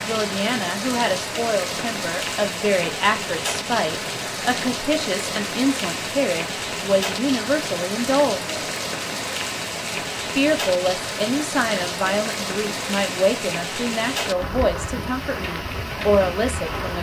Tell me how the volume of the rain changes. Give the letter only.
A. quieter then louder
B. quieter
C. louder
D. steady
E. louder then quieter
D.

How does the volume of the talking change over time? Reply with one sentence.
The volume of the talking stays about the same.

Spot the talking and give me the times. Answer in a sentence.
The talking can be heard from 0.1 to 8.6 s and from 10.3 to 16.9 s.